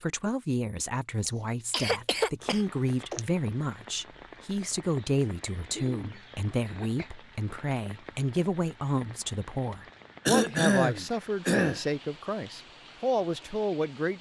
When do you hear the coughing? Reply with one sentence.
You can hear the coughing from 1.2 to 3.2 s, from 5.7 to 7.1 s and from 10.2 to 11.8 s.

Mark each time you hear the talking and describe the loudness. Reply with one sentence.
The talking can be heard from 0.0 to 14.1 s, at a steady volume.